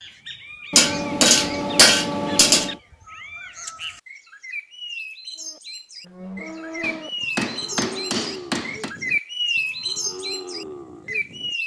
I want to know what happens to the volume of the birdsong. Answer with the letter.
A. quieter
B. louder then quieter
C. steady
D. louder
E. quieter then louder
D.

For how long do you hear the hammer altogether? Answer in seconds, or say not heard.
4 s.